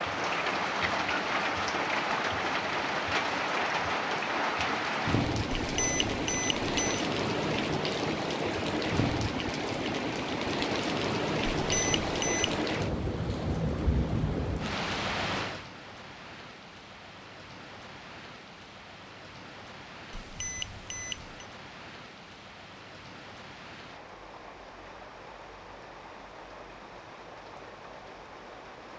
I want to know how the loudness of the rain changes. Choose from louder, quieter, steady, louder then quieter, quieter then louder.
quieter.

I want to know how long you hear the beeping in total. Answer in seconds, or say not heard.
4 s.